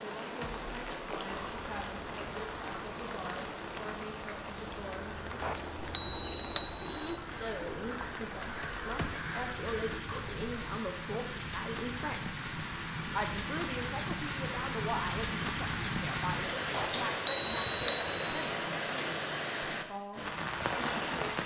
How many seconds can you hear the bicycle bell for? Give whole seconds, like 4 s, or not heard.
3 s.